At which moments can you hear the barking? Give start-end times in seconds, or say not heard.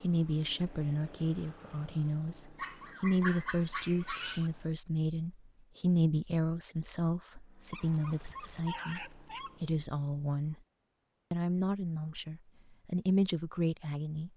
2.5-4.5, 7.7-9.6.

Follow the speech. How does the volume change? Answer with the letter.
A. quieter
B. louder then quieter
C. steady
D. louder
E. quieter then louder
C.